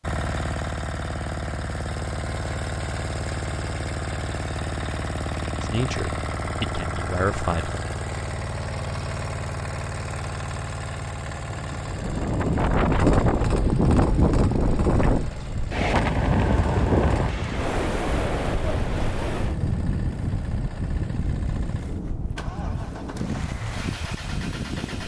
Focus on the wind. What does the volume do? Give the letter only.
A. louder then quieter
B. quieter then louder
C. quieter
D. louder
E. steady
C.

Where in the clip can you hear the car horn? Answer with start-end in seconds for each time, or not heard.
not heard.